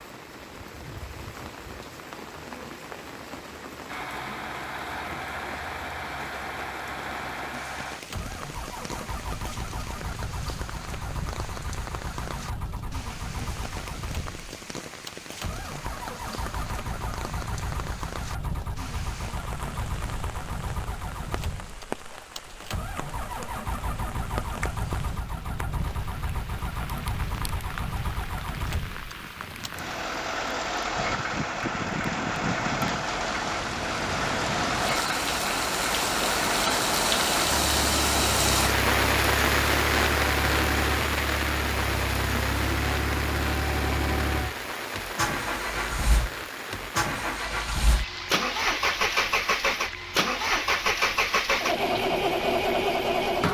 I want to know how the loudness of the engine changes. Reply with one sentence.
The volume of the engine goes up.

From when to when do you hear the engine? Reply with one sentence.
You can hear the engine from 3.9 to 53.4 s.